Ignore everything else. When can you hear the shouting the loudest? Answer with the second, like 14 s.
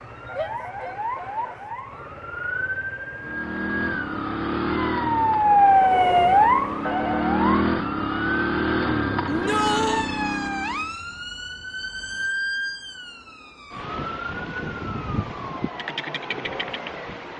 10 s.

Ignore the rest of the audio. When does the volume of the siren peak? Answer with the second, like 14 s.
6 s.